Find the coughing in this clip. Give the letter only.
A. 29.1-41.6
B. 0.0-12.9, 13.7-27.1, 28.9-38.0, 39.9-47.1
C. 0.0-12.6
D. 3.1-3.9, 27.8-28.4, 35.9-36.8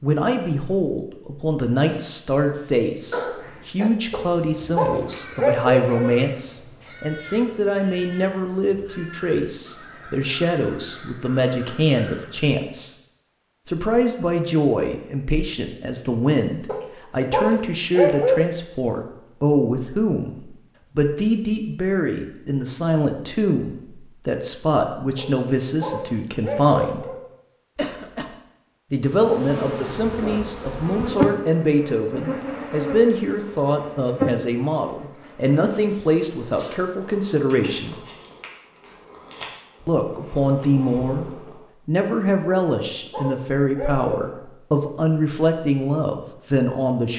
D.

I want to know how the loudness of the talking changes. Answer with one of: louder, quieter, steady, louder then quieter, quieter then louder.
steady.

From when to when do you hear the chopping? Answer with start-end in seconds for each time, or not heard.
not heard.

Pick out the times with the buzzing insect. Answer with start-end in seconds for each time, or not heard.
29.1-41.6.